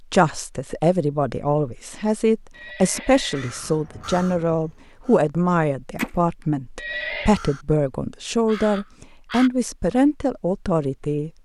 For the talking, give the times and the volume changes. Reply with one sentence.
The talking can be heard from 0.1 to 11.3 s, at a steady volume.